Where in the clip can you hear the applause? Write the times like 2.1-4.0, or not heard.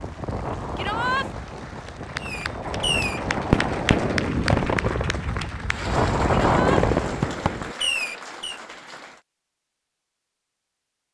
0.0-9.2.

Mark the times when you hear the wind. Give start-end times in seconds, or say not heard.
0.0-7.4.